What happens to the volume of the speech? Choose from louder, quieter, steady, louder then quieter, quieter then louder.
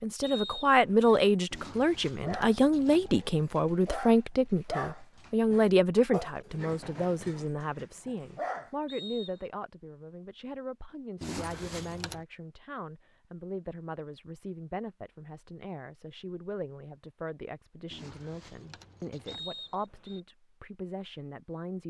quieter.